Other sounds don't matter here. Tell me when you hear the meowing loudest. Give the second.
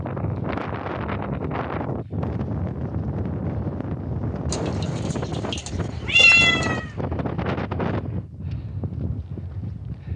6 s.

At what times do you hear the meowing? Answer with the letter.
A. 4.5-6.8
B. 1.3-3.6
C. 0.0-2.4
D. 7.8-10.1
A.